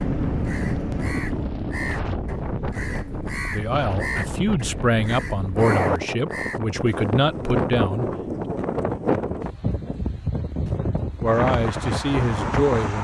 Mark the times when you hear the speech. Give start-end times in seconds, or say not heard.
3.5-8.1, 11.2-12.9.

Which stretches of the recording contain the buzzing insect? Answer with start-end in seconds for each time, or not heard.
not heard.